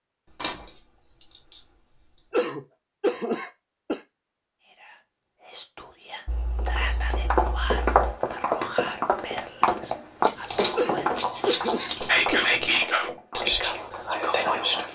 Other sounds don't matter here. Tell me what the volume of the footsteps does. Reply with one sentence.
The volume of the footsteps goes down.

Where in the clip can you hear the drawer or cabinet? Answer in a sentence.
You can't hear the drawer or cabinet here.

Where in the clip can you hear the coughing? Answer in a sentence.
The coughing can be heard from 2.3 to 4.0 s and from 10.8 to 12.6 s.